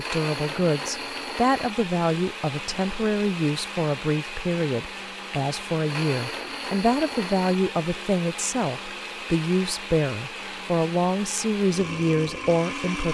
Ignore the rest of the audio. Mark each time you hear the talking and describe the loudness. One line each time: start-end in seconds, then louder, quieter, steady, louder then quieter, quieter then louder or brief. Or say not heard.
0.0-13.0 steady.